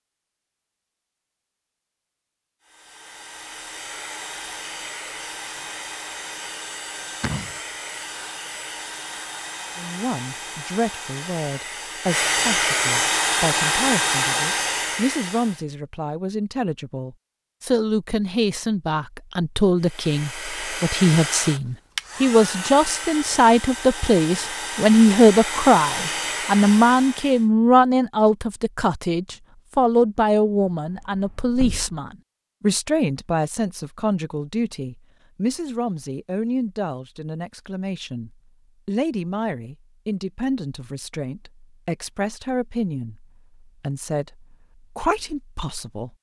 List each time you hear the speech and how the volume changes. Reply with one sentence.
The speech can be heard from 9.8 to 46.1 s, getting louder then quieter.